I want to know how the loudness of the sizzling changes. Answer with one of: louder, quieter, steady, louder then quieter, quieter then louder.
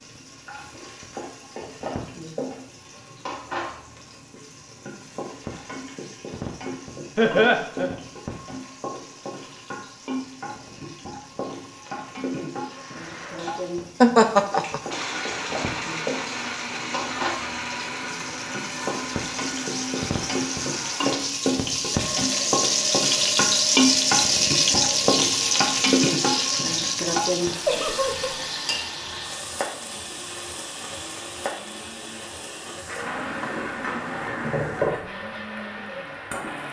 louder then quieter.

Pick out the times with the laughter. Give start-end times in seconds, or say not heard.
7.2-8.0, 14.0-14.8, 27.6-28.4.